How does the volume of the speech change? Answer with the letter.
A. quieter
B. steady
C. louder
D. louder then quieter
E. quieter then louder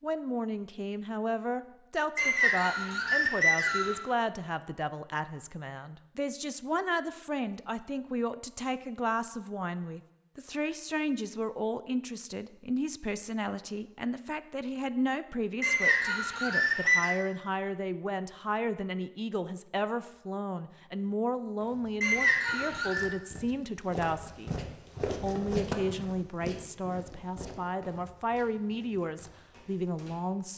B.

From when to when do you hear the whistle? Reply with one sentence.
You can hear the whistle from 2.1 to 4.0 s, from 15.6 to 17.1 s and from 22.0 to 23.1 s.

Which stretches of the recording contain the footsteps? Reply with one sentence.
The footsteps can be heard from 21.6 to 30.2 s.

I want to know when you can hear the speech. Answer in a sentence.
You can hear the speech from 0.0 to 30.5 s.